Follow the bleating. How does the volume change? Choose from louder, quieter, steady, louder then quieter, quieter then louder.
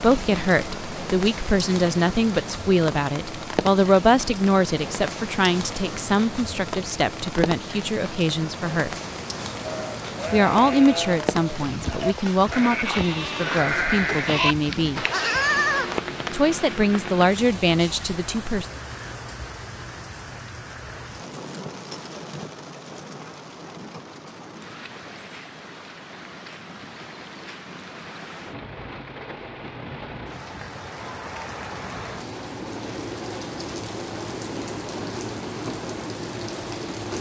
louder.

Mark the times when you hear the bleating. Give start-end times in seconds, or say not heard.
9.6-16.0.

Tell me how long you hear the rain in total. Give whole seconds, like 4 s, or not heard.
37 s.